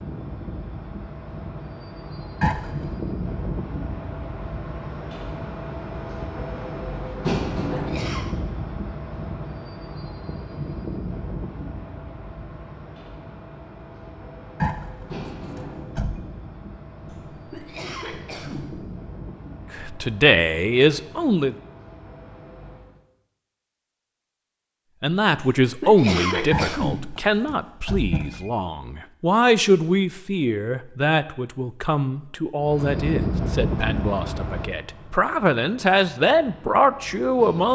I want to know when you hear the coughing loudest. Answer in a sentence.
The volume of the coughing peaks at 26 seconds.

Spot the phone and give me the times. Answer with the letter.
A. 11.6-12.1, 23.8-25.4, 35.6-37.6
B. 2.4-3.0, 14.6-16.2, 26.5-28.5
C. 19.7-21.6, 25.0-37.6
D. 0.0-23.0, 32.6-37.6
B.